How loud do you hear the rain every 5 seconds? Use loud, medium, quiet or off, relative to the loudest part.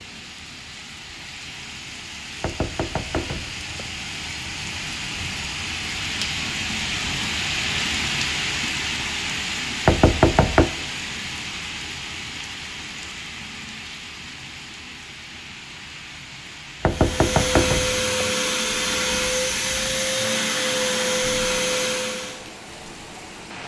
medium, loud, medium, quiet, quiet.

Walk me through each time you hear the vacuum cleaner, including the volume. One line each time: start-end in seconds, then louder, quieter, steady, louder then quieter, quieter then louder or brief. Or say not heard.
16.9-22.4 steady.